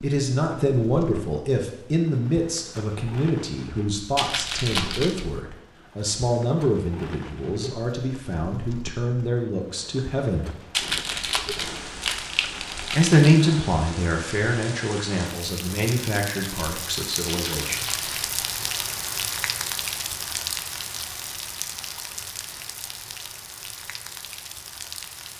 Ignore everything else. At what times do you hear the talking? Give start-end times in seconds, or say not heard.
0.0-10.5, 12.9-17.9.